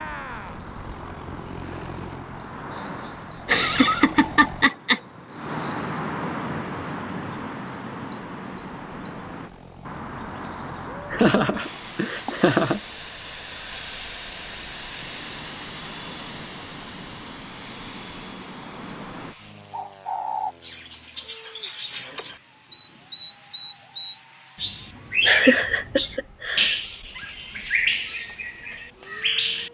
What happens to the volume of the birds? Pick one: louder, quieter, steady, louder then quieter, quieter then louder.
quieter then louder.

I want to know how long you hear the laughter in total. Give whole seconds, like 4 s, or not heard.
5 s.